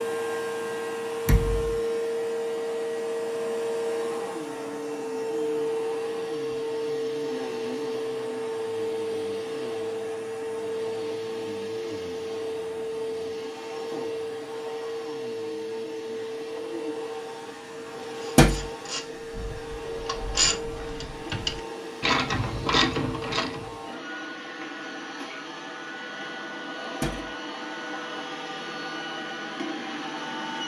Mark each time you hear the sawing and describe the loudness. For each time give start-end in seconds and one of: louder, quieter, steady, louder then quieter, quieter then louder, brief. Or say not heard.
not heard.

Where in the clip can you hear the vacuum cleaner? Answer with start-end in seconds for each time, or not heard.
0.0-30.6.